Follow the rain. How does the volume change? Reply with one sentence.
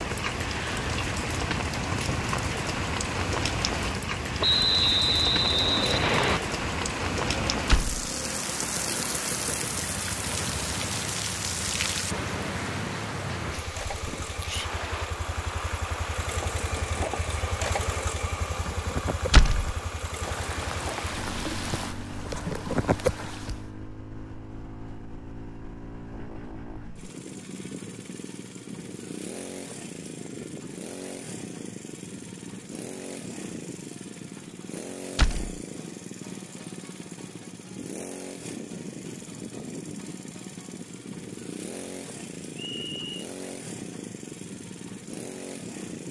The loudness of the rain goes down, then up.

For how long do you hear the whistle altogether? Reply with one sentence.
The whistle can be heard for 3 seconds in total.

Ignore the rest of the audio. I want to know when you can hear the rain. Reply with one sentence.
You can hear the rain from 0.0 to 23.6 s.